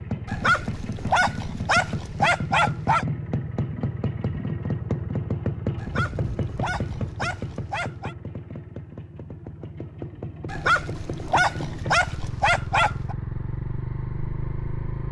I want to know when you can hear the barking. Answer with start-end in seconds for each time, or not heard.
0.2-3.0, 5.8-8.2, 10.4-13.2.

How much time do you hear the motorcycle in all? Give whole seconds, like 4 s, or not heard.
15 s.